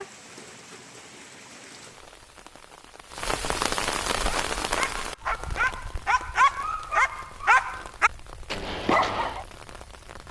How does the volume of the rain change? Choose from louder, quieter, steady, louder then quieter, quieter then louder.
louder then quieter.